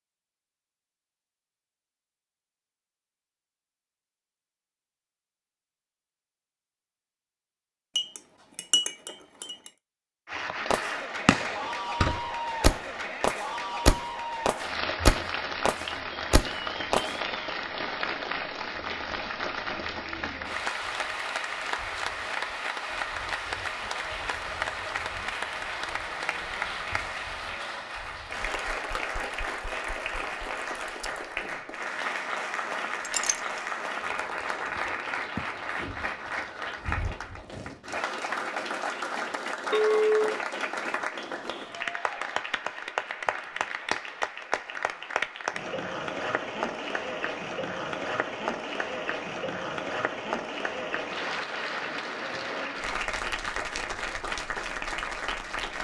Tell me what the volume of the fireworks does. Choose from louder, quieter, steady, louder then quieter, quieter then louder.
louder then quieter.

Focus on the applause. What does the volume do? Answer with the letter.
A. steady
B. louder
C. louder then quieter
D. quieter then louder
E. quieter
A.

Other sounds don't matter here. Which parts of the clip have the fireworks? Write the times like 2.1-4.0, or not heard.
10.7-17.0.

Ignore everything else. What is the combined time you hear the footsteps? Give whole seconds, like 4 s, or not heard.
not heard.